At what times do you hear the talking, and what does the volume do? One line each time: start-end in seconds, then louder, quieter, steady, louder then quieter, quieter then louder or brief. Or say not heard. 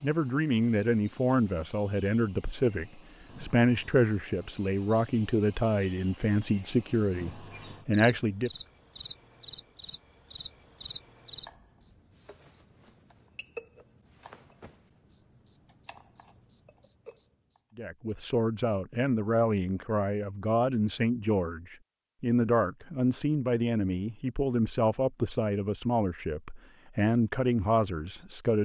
0.0-8.5 steady
17.8-28.5 steady.